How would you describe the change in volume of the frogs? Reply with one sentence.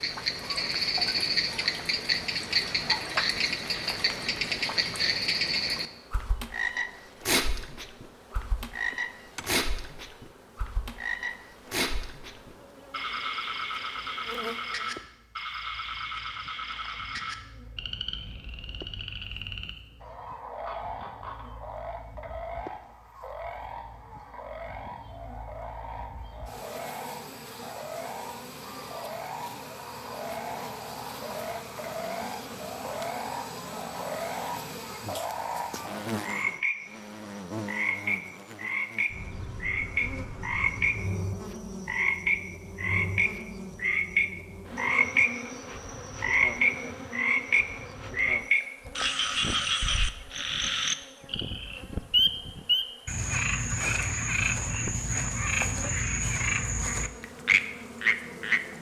The loudness of the frogs goes down, then up.